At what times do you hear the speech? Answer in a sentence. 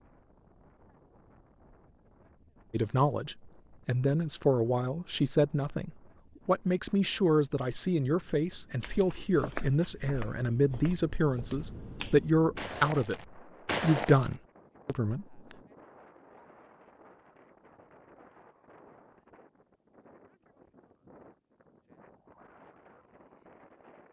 The speech can be heard from 2.7 to 15.6 s.